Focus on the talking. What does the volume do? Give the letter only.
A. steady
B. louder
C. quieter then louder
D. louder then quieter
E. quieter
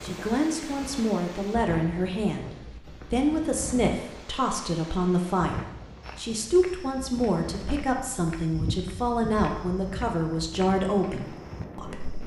A.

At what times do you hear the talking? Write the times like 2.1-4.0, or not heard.
0.0-12.2.